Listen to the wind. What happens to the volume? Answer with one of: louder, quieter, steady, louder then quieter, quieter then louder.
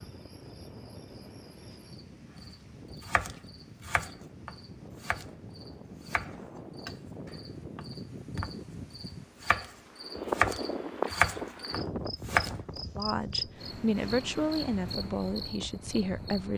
louder then quieter.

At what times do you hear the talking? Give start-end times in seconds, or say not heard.
12.9-16.5.